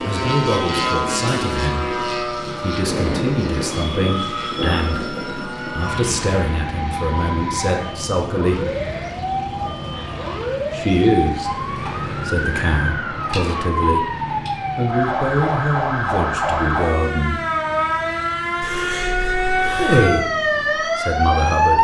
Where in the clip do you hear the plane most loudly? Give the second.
1 s.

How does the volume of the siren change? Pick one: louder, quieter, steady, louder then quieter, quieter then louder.
louder.